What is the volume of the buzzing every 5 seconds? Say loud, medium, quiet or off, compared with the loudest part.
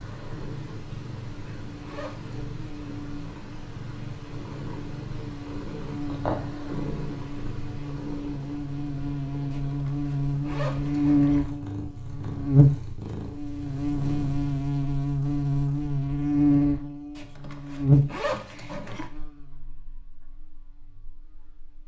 quiet, medium, loud, loud, quiet.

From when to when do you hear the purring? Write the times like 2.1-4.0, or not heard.
0.0-14.6.